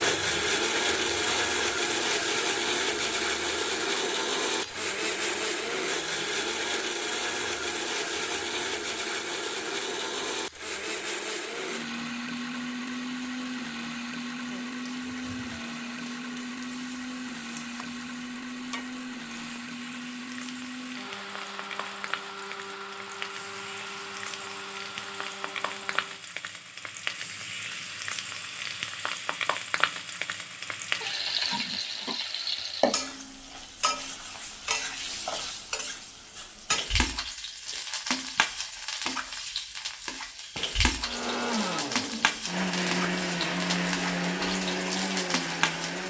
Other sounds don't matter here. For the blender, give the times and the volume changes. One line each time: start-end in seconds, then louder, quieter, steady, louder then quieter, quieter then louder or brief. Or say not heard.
0.0-26.2 quieter
41.0-46.0 steady.